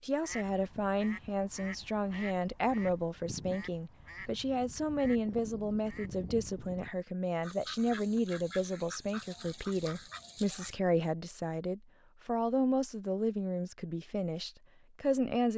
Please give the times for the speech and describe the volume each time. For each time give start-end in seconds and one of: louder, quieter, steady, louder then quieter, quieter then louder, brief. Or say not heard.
0.0-15.5 steady.